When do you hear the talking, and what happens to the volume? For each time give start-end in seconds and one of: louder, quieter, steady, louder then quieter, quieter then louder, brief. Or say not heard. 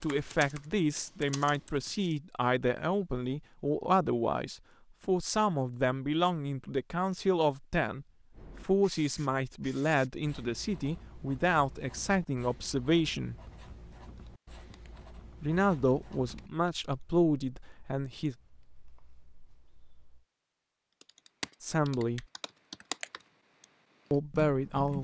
0.0-13.3 steady
15.4-18.4 brief
21.6-22.2 brief
24.1-24.9 brief.